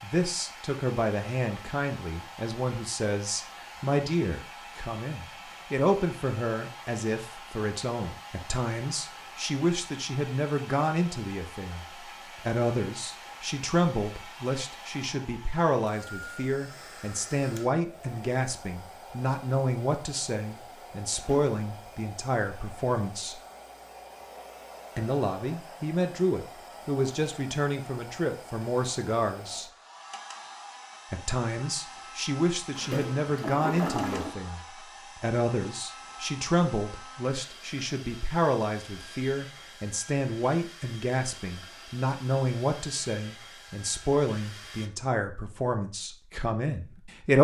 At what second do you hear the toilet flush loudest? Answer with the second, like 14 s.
34 s.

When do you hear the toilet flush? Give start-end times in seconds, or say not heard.
21.1-21.6, 32.8-34.4.